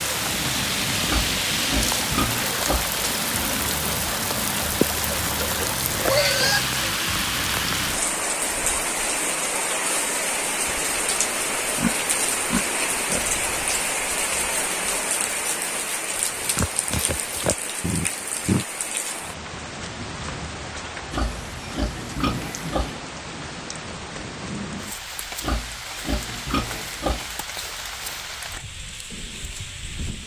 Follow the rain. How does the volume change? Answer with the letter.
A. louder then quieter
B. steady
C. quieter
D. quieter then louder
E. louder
C.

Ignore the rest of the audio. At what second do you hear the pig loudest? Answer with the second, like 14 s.
6 s.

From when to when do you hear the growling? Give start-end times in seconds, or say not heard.
17.8-18.6.